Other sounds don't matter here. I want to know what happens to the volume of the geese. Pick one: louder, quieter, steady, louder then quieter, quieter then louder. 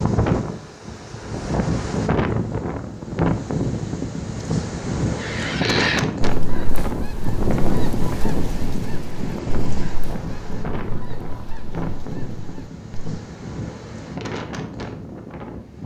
quieter.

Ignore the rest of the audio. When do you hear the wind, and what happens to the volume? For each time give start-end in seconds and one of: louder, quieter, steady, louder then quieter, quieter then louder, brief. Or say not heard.
0.0-15.8 quieter.